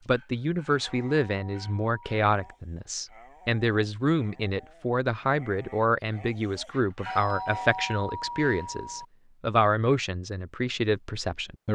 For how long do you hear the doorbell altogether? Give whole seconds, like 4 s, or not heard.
4 s.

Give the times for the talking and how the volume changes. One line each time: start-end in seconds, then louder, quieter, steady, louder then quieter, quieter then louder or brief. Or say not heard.
0.1-11.7 steady.